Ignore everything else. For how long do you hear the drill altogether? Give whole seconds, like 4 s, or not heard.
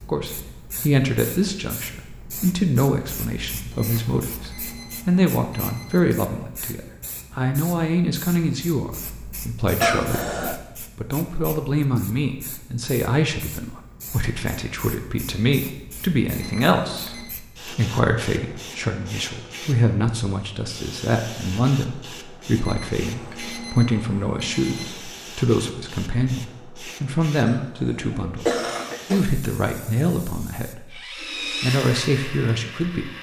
2 s.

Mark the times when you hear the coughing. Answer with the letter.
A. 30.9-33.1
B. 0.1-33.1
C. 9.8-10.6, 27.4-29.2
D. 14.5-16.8
C.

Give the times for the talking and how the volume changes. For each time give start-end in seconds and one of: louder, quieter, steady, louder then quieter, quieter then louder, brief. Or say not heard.
0.1-33.1 steady.